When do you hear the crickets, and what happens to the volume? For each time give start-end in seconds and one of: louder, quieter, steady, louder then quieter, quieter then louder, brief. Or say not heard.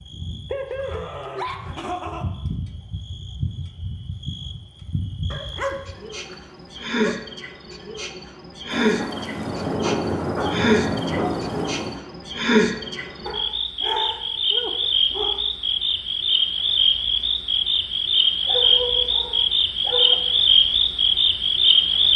0.0-22.1 louder.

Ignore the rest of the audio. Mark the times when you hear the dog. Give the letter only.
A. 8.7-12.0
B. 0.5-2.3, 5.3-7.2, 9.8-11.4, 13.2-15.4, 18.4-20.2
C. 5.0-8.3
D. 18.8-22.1
B.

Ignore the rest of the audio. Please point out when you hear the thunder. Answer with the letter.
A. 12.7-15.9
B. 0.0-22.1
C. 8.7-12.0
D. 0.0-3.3
C.